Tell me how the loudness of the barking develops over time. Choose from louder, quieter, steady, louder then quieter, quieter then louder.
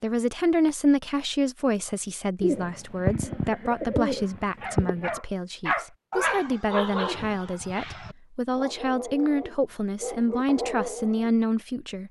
quieter then louder.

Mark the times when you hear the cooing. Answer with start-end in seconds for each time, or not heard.
2.4-5.2.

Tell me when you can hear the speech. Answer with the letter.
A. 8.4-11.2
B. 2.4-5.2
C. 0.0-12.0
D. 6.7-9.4
C.